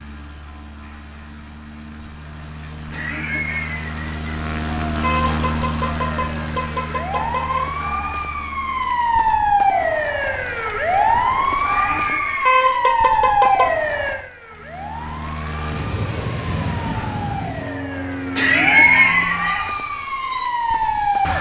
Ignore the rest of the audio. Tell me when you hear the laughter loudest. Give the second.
19 s.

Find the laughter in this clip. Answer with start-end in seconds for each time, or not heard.
2.9-4.3, 11.7-12.6, 18.4-19.7.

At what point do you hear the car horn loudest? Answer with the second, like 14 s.
13 s.